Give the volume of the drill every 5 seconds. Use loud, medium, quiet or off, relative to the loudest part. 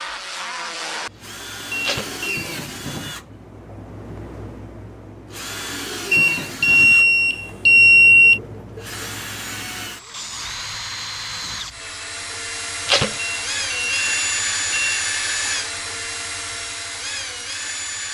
medium, medium, loud, loud.